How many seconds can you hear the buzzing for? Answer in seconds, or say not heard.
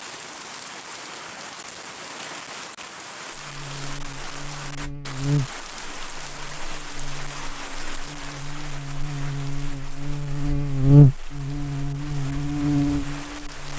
10 s.